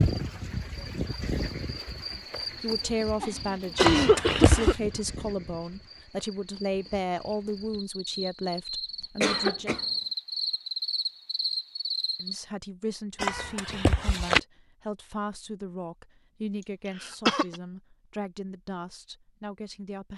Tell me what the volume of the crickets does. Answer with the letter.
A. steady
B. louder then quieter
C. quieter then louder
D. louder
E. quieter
C.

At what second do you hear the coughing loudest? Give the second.
4 s.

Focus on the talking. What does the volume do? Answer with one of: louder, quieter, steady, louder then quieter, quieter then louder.
quieter.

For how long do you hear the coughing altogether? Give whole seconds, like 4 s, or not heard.
3 s.